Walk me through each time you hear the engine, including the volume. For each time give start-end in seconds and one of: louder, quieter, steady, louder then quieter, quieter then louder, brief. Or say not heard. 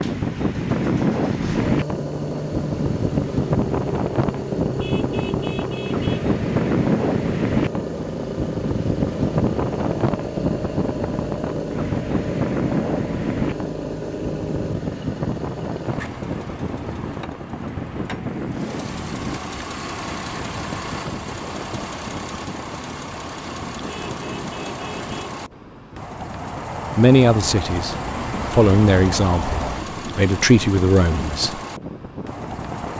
0.0-32.9 steady.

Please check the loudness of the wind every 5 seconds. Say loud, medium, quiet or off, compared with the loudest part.
loud, loud, loud, medium, quiet, quiet, quiet.